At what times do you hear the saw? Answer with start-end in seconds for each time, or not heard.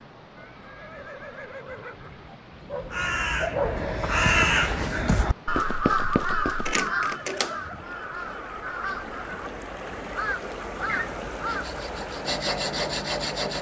11.4-13.5.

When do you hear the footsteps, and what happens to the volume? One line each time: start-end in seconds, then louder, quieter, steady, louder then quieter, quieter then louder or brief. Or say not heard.
not heard.